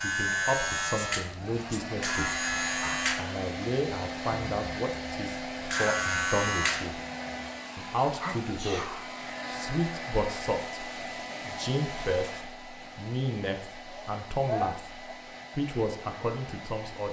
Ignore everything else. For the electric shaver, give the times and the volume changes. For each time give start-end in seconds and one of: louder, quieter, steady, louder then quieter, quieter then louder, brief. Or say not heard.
0.0-7.5 quieter then louder.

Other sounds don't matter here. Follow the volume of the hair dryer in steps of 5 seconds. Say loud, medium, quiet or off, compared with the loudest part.
loud, loud, loud, medium.